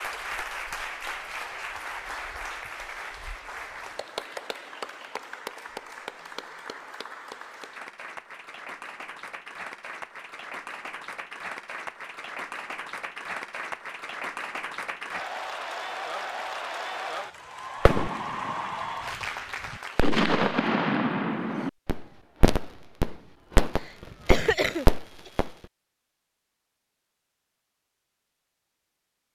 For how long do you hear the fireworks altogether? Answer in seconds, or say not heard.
6 s.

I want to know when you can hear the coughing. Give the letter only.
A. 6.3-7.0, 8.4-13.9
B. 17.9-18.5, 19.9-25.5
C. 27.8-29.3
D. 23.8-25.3
D.